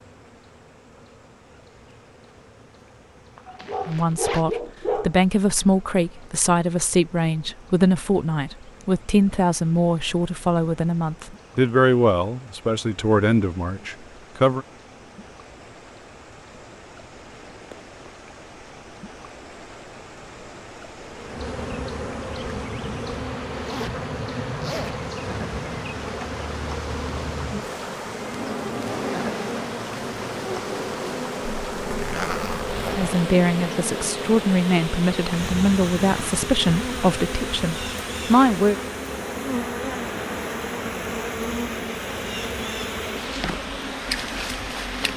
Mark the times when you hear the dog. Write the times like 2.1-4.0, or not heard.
3.5-5.2.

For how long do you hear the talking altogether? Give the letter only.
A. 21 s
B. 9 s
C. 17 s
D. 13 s
C.